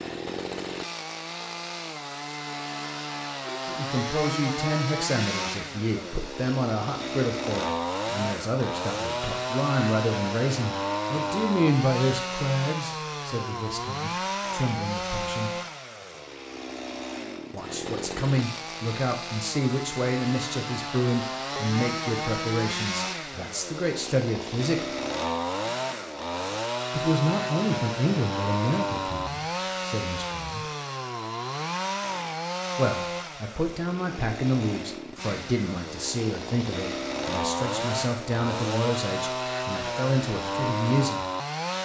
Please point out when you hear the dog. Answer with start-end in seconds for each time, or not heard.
not heard.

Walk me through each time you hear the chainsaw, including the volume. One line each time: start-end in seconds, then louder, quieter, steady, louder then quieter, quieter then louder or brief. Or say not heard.
0.0-41.7 steady.